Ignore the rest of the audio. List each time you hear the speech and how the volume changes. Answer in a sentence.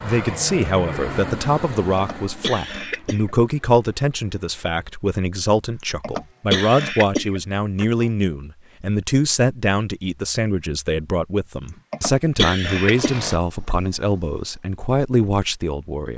The speech can be heard from 0.0 to 16.1 s, at a steady volume.